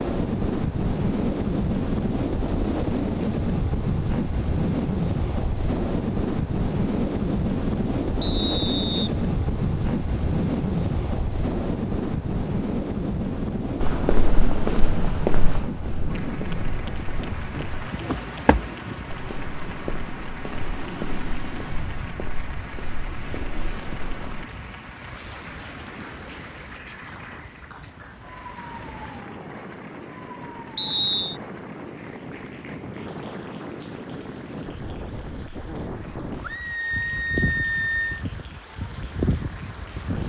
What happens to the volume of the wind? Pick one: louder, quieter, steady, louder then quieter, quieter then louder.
quieter then louder.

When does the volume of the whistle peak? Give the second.
31 s.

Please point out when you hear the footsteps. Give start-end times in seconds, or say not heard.
13.8-24.4.